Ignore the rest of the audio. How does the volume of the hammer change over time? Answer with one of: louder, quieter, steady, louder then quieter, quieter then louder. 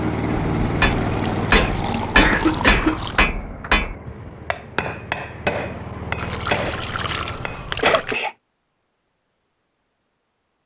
quieter.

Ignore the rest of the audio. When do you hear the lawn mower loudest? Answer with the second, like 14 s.
1 s.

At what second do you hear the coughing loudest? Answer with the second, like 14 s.
2 s.